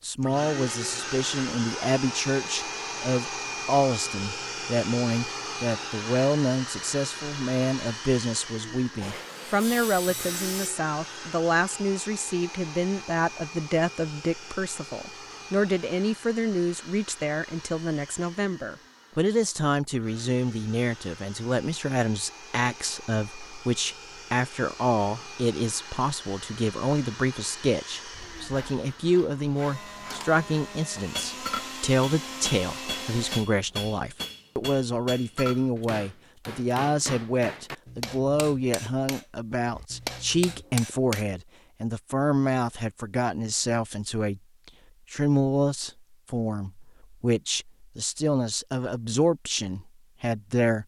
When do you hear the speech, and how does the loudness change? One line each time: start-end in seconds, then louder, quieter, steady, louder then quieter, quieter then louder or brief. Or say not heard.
0.0-50.8 steady.